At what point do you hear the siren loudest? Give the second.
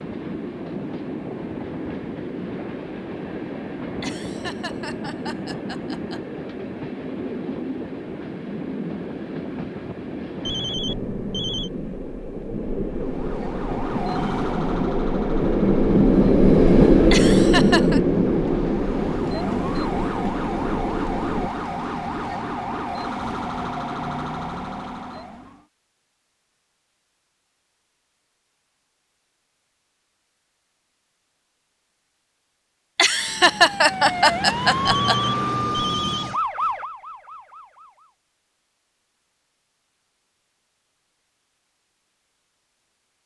35 s.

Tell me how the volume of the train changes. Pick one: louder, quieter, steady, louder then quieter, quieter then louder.
louder.